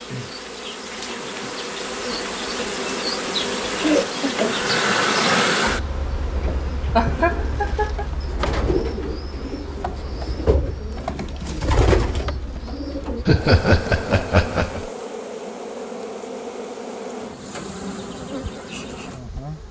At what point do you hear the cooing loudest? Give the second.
12 s.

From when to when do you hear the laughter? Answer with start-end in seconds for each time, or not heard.
2.5-4.6, 7.0-8.1, 13.2-14.9.